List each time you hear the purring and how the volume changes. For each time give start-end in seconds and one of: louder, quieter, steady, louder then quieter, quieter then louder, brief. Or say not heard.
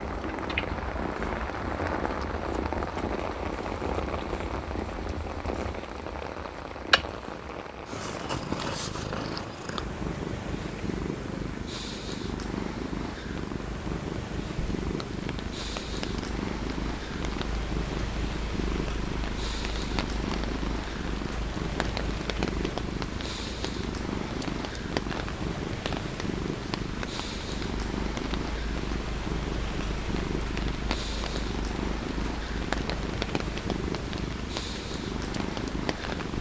0.0-36.3 steady.